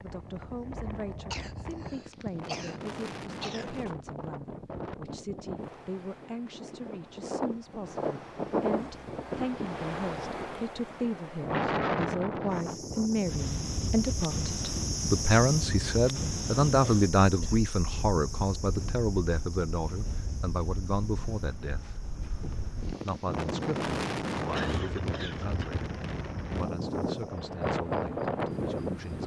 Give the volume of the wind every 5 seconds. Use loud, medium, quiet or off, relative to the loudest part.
medium, loud, loud, medium, loud, loud.